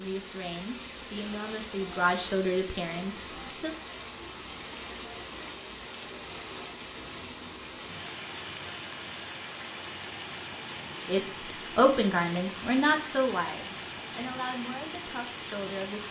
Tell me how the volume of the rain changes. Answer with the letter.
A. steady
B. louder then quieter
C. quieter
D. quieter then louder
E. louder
A.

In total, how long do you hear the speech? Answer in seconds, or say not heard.
9 s.